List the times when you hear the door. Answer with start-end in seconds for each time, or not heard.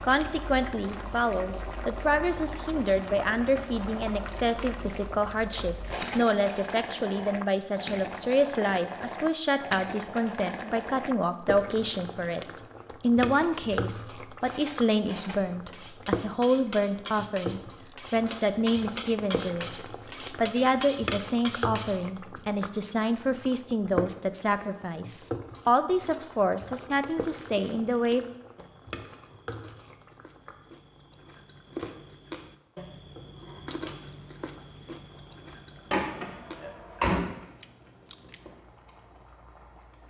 35.9-37.4.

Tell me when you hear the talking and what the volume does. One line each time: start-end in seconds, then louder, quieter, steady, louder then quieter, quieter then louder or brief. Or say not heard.
0.0-28.2 steady.